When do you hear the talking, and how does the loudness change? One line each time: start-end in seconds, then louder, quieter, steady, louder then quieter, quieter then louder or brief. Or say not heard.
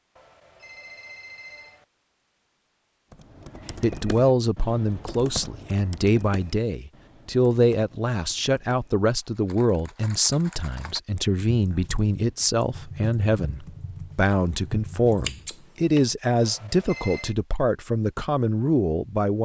3.8-19.4 steady.